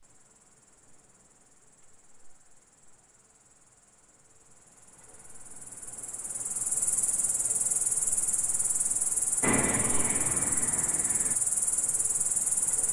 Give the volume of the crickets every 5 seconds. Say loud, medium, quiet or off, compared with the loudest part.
quiet, loud, loud.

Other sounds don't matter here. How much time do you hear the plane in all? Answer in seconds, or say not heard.
2 s.